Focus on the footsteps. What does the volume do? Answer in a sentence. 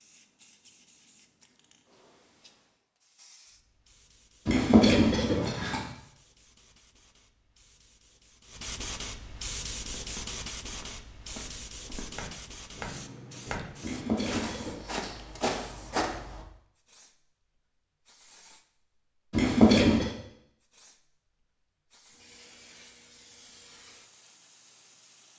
The loudness of the footsteps goes up.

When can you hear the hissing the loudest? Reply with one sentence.
The volume of the hissing peaks at 10 seconds.